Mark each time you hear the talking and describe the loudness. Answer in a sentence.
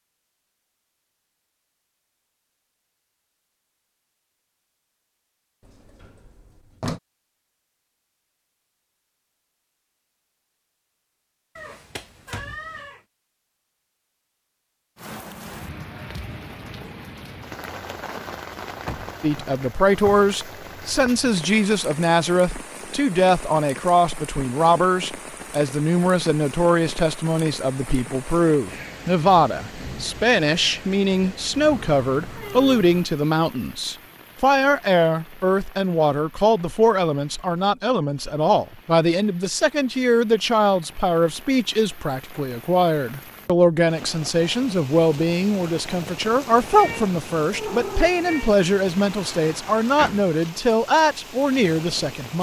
The talking can be heard from 19.2 to 52.3 s, at a steady volume.